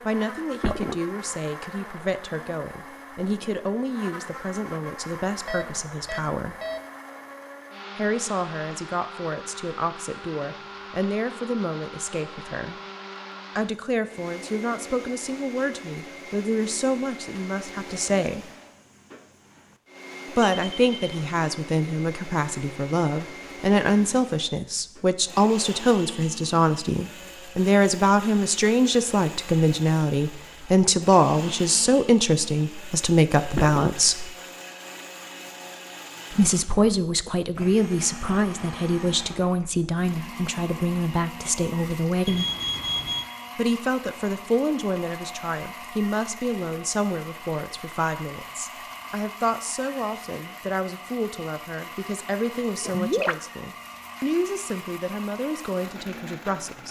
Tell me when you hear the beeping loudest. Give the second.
43 s.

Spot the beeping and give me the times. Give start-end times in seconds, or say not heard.
5.5-6.8, 20.6-21.2, 42.2-43.3.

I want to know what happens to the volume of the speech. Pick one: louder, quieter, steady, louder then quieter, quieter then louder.
louder then quieter.